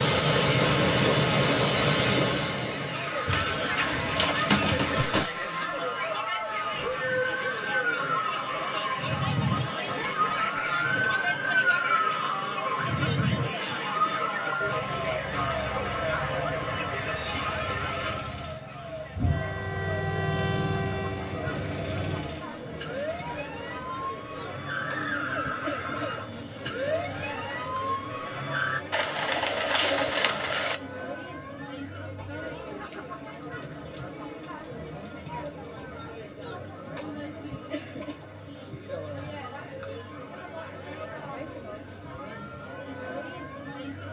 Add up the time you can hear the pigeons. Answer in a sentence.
The pigeons can be heard for 4 seconds in total.